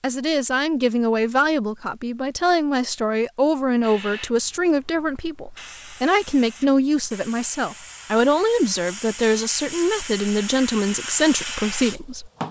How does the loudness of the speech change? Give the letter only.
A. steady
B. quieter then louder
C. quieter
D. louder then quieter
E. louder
A.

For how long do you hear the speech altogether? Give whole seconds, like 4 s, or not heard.
12 s.